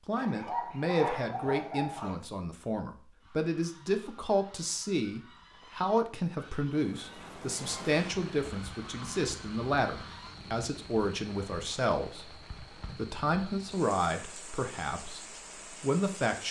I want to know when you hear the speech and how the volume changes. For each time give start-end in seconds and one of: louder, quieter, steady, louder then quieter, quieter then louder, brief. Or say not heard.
0.1-16.4 steady.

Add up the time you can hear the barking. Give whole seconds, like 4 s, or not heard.
2 s.